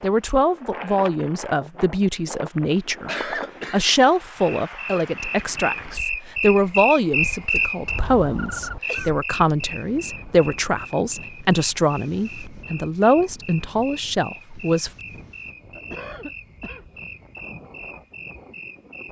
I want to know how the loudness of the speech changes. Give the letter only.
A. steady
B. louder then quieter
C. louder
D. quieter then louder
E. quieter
A.